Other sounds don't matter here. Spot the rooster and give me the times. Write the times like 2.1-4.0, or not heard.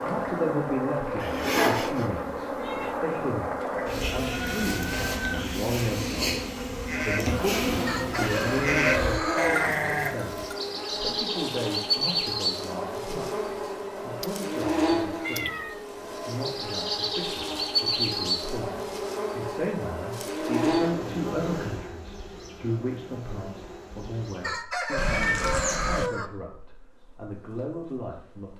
7.8-9.7, 24.4-26.3.